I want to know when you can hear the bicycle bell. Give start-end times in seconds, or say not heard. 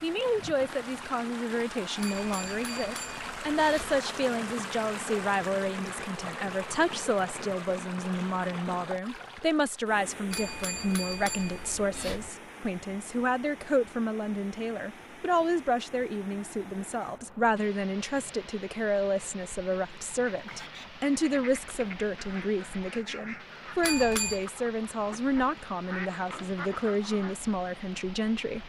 2.0-4.0, 10.3-12.3, 23.8-24.4.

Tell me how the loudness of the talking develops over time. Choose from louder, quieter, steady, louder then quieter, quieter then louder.
steady.